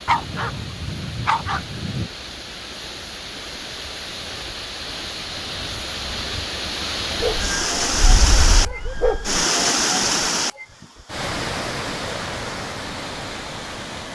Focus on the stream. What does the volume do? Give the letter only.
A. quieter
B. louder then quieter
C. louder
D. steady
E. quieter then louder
B.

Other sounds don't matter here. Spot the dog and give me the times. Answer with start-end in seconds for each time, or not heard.
0.1-2.1, 7.2-9.4.